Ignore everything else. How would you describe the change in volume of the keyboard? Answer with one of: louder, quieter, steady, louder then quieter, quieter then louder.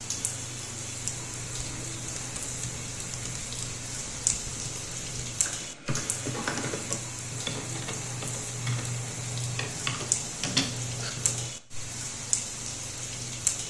louder.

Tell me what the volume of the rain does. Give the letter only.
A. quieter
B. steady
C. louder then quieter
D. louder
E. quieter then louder
B.